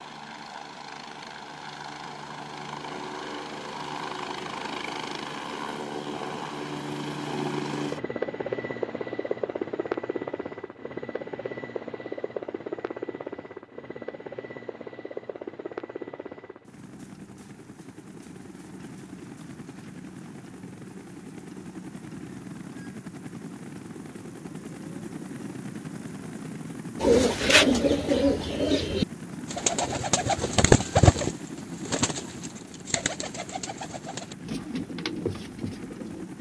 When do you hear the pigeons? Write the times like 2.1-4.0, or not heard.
27.0-36.3.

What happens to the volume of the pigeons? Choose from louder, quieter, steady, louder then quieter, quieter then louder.
quieter.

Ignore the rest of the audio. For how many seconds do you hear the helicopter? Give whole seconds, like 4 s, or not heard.
36 s.